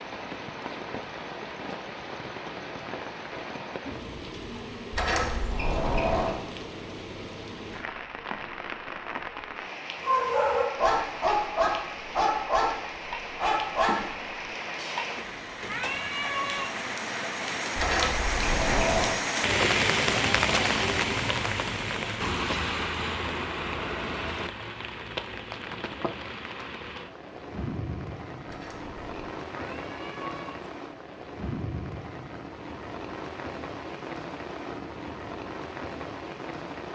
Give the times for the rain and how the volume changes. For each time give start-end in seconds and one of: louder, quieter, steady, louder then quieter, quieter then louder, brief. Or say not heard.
0.0-36.8 louder then quieter.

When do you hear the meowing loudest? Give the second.
16 s.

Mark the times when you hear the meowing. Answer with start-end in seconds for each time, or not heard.
15.7-16.9, 29.5-30.8.